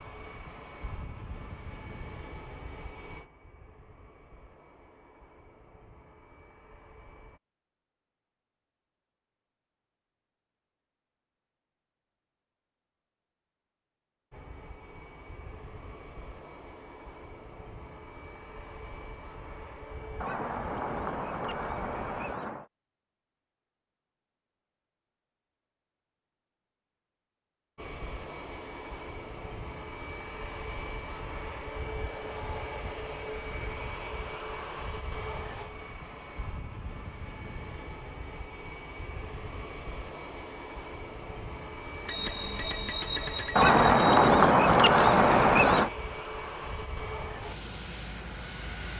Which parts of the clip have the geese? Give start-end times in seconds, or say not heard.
20.2-22.6, 43.5-45.9.